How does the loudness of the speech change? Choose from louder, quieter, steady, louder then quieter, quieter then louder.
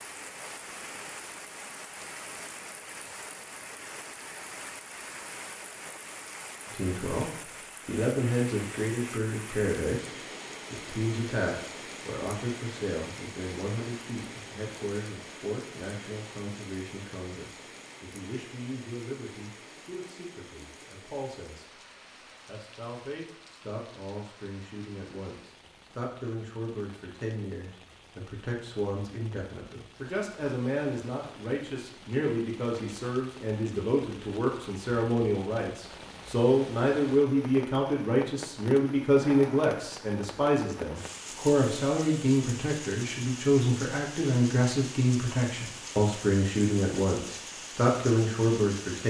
quieter then louder.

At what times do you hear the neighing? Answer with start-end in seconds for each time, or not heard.
not heard.